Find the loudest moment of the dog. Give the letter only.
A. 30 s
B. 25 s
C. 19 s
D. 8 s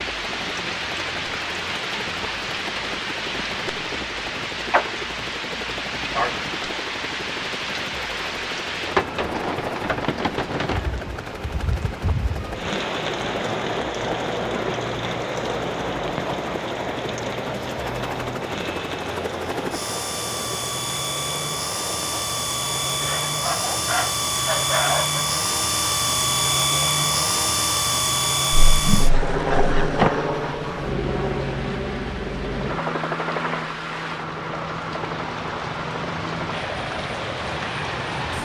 B.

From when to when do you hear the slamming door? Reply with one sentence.
The slamming door can be heard from 28.5 to 30.1 s.